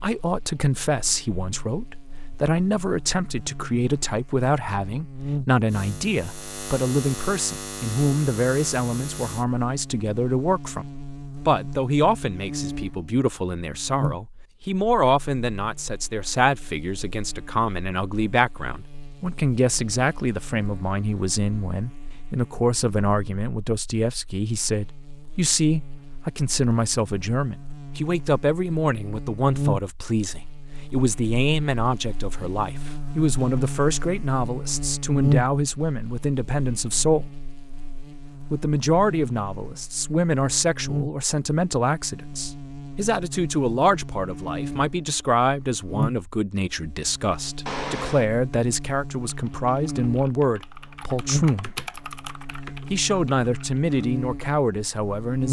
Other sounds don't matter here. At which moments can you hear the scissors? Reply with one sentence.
You can hear the scissors from 47.6 to 48.2 s.